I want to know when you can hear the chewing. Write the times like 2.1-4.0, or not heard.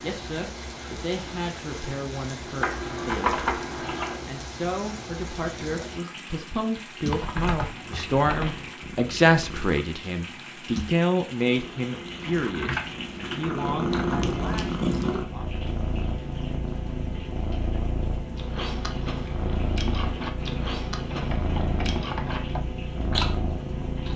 18.4-22.4, 23.1-24.1.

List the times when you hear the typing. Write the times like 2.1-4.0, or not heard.
2.6-4.2, 7.1-8.6, 12.4-14.2, 21.1-22.6.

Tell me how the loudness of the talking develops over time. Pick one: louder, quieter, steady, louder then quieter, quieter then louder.
louder then quieter.